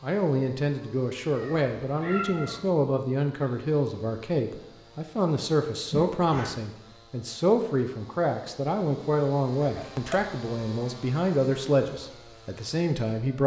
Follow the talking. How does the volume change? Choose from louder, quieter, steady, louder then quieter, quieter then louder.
steady.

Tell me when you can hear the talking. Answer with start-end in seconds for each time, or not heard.
0.0-13.4.